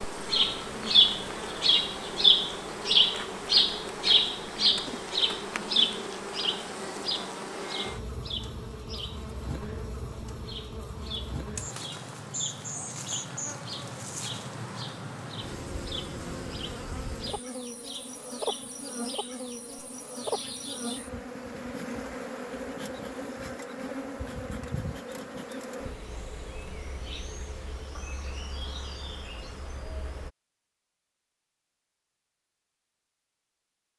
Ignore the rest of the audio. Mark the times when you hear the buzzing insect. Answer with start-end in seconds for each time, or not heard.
0.0-30.3.